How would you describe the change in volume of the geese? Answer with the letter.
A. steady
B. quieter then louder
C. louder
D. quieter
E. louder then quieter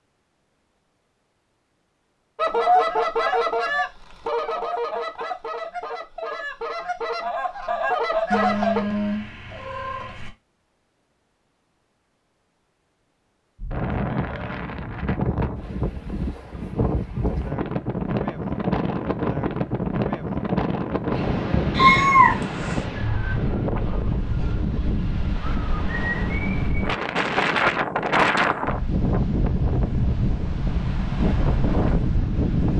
B.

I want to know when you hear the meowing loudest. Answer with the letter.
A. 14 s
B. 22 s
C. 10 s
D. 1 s
B.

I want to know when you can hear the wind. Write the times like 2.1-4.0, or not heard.
13.6-32.7.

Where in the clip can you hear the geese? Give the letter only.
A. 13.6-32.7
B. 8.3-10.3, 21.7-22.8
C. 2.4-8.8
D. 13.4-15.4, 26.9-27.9
C.